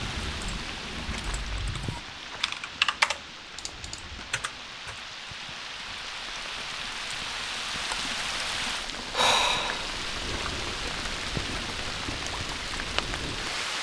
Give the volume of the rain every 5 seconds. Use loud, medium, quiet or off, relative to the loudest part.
medium, loud, loud.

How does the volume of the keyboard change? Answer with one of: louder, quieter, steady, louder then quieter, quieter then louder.
louder then quieter.